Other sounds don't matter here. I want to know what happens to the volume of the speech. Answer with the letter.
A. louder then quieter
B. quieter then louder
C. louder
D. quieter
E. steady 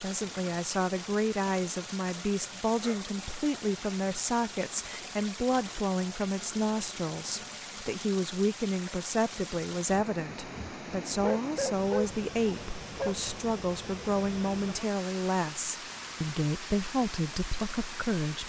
E.